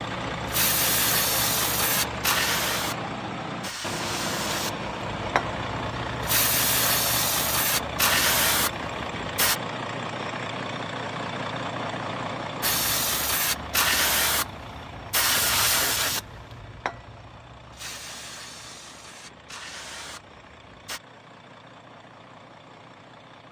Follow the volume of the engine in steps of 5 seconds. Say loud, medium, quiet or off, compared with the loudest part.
loud, loud, loud, quiet, quiet.